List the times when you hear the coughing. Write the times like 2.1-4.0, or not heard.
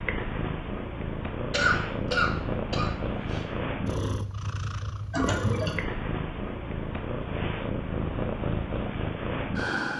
1.5-3.5, 5.1-5.8.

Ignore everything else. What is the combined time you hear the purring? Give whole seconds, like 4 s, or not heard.
10 s.